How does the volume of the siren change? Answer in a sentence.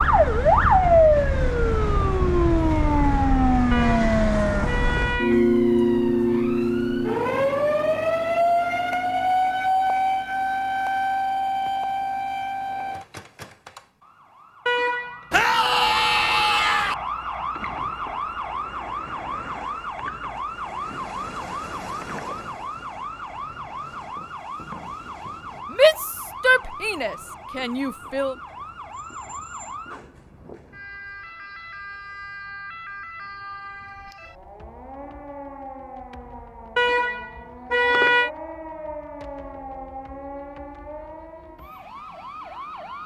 The volume of the siren goes down.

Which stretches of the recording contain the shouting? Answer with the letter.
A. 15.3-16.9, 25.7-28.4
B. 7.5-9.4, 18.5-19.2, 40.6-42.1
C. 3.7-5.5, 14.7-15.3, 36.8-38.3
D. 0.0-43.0
A.